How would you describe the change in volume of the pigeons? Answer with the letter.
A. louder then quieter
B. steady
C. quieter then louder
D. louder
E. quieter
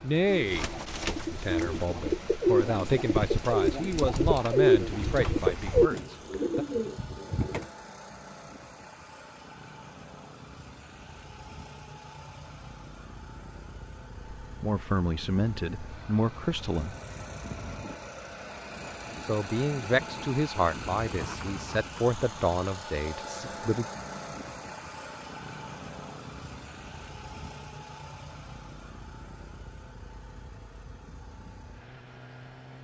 A.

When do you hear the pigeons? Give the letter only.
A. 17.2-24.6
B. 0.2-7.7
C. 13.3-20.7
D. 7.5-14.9
B.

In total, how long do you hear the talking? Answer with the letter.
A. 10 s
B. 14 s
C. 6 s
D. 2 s
B.